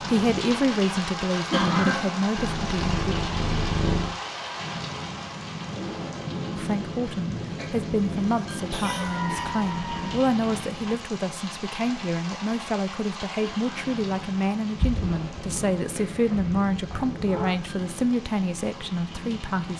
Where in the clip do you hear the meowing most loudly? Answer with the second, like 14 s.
4 s.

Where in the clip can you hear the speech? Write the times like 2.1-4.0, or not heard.
0.0-3.1, 6.5-19.7.